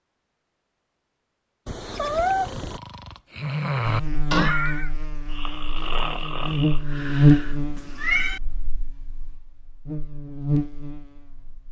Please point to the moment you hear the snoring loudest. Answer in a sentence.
The volume of the snoring peaks at 4 seconds.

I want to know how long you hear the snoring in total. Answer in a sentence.
The snoring can be heard for 5 seconds in total.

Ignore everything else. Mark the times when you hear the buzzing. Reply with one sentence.
The buzzing can be heard from 3.9 to 11.6 s.